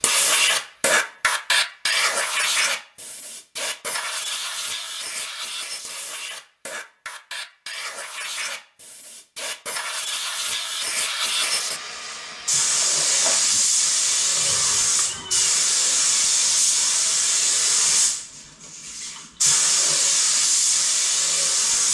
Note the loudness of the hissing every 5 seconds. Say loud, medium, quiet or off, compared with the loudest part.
loud, quiet, loud, loud, loud.